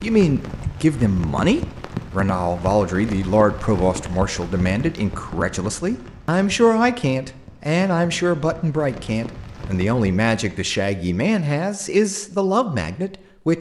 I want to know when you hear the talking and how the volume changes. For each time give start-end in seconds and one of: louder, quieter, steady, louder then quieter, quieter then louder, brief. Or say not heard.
0.0-13.5 steady.